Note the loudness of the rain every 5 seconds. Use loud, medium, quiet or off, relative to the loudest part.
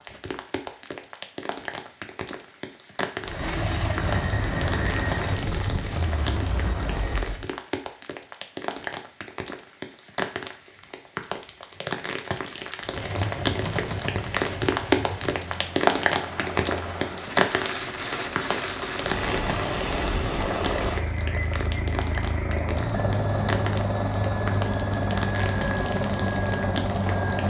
medium, medium, loud, loud, medium, medium.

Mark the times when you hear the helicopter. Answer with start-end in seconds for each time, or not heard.
3.2-7.5, 12.8-27.4.